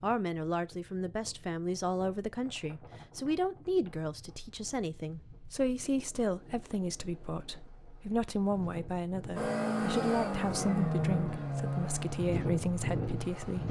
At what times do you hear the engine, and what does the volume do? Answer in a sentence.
You can hear the engine from 9.3 to 13.6 s, getting quieter.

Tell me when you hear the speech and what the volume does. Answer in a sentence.
The speech can be heard from 0.0 to 13.6 s, at a steady volume.